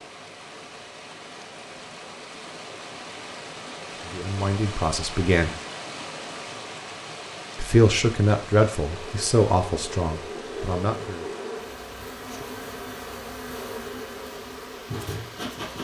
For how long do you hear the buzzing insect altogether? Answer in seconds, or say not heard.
7 s.